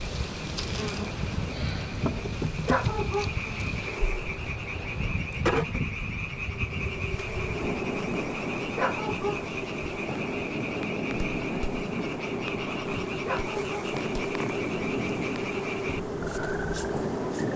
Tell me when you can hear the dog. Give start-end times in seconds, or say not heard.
2.6-3.3, 8.8-9.4, 13.2-13.7.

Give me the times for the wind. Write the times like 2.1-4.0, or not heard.
0.0-17.5.